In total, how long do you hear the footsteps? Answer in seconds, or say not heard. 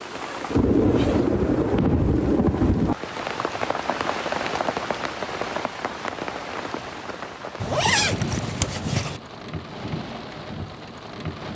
not heard.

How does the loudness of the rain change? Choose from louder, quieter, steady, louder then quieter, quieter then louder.
quieter.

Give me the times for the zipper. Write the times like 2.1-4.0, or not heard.
0.1-1.4, 7.6-9.2.